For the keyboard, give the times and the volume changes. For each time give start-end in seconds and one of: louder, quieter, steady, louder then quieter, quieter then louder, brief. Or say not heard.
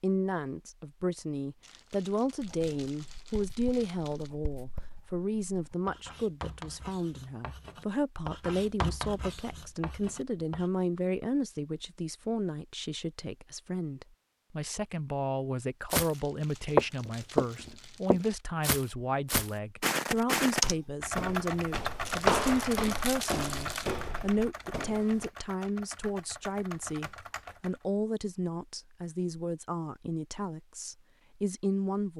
20.6-27.8 quieter.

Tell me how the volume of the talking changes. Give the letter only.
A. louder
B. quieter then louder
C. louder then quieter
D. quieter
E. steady
E.